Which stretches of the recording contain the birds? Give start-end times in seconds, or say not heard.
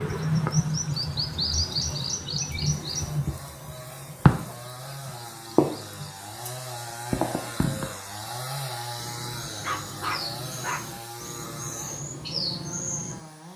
0.0-6.5, 7.1-13.2.